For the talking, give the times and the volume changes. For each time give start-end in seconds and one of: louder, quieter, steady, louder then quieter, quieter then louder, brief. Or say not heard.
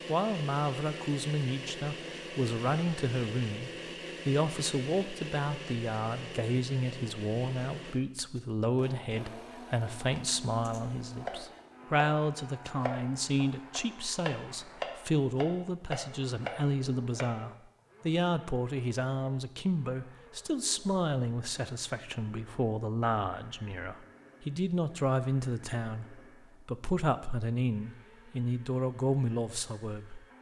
0.1-30.2 steady.